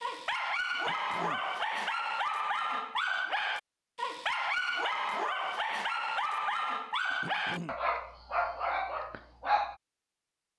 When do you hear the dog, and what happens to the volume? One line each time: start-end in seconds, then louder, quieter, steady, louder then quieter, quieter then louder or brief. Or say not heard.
0.0-9.8 steady.